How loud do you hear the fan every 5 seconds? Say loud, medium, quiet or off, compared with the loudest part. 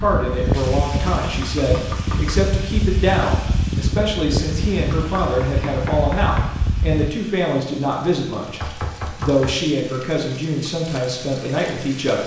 loud, loud, off.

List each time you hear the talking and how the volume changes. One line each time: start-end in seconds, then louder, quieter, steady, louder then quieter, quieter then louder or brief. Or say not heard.
0.0-12.2 steady.